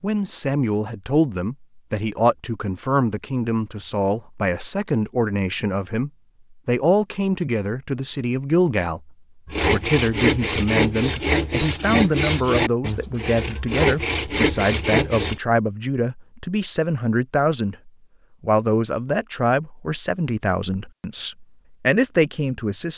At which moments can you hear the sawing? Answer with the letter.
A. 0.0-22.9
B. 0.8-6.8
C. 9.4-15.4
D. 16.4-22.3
C.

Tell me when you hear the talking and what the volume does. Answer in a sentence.
You can hear the talking from 0.0 to 22.9 s, at a steady volume.